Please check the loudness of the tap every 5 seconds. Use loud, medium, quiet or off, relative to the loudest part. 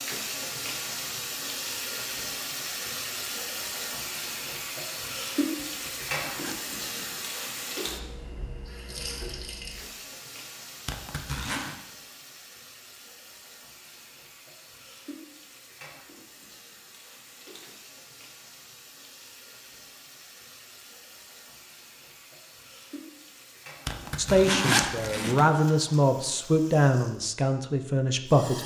loud, loud, quiet, quiet, quiet, medium.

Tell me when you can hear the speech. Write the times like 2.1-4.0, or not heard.
24.1-28.6.